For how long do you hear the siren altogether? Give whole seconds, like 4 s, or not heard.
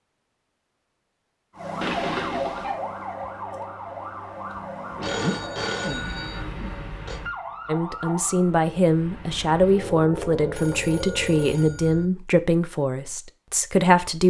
10 s.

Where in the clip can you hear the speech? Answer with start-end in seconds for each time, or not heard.
7.7-14.2.